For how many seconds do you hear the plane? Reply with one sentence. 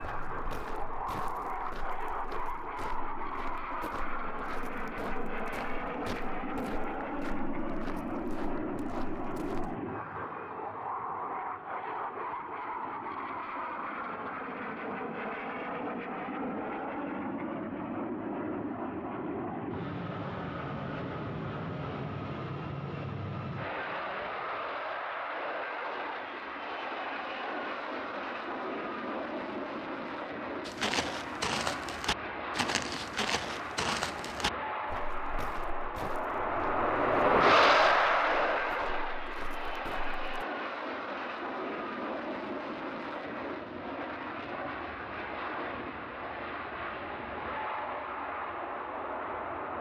You can hear the plane for 50 seconds altogether.